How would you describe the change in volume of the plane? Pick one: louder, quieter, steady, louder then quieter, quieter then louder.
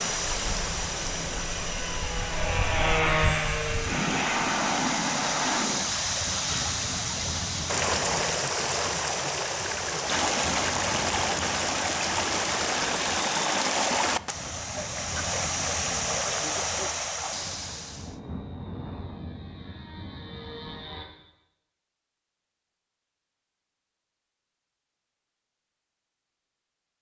quieter.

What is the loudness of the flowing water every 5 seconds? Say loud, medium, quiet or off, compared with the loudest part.
medium, loud, loud, loud, off, off.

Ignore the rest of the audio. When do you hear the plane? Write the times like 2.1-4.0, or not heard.
0.0-21.1.